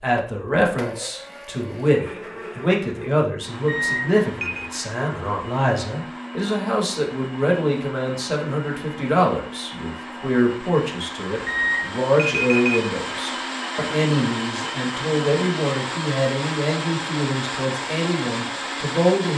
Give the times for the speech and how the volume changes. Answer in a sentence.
You can hear the speech from 0.0 to 19.3 s, at a steady volume.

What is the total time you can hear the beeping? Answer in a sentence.
The beeping can be heard for 2 seconds in total.